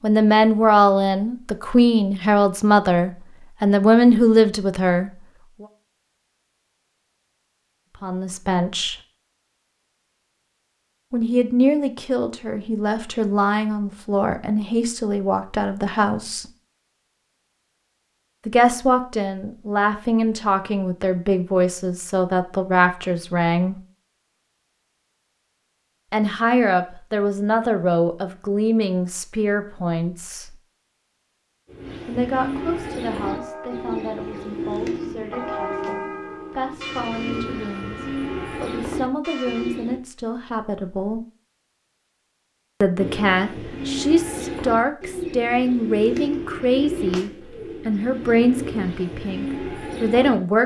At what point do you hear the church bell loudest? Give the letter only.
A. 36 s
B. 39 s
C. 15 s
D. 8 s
A.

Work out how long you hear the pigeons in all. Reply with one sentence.
The pigeons can be heard for 16 seconds in total.